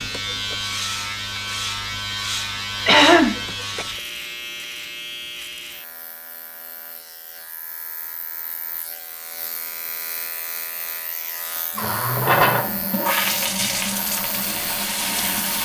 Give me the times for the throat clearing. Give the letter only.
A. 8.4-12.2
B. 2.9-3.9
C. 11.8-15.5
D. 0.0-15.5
B.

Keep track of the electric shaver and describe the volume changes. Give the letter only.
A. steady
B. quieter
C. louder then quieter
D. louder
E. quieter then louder
E.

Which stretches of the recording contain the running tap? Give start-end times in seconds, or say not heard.
11.8-15.5.